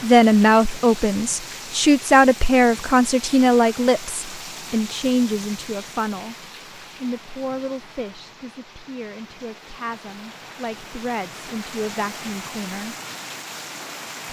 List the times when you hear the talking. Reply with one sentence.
The talking can be heard from 0.0 to 12.9 s.